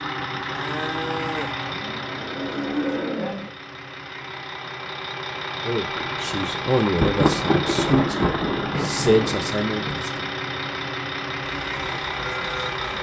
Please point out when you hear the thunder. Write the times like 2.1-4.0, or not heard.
6.0-10.0.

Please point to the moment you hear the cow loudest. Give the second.
3 s.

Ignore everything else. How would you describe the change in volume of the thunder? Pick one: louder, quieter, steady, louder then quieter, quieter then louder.
louder then quieter.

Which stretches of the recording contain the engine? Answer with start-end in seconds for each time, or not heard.
0.0-12.9.